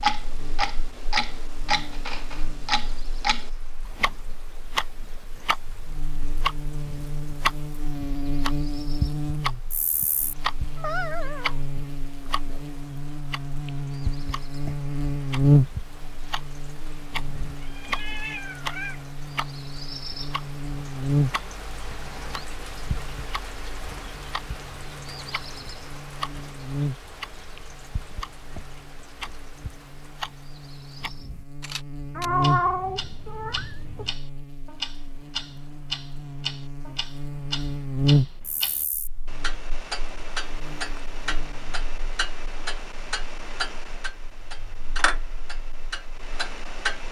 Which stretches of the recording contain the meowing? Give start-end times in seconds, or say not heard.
10.6-11.6, 17.5-19.0, 32.1-34.1.